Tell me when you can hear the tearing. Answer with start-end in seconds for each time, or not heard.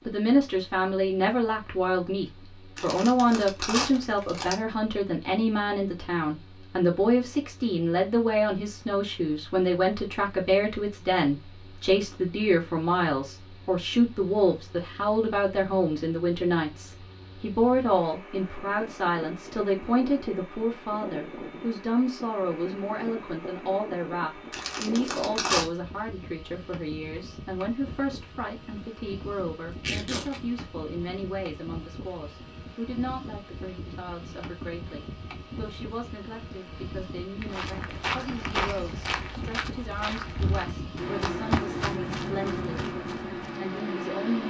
2.8-4.5, 24.5-25.6, 29.7-30.4.